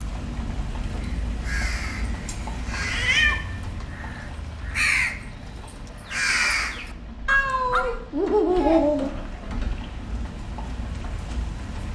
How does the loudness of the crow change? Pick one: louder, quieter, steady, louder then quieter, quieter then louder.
louder.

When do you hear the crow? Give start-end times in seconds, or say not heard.
0.9-7.8.